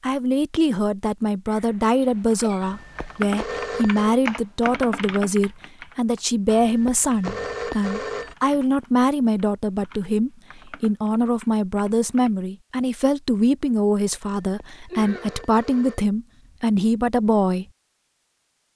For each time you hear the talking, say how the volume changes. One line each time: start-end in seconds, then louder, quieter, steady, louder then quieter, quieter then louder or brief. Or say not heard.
0.0-17.6 steady.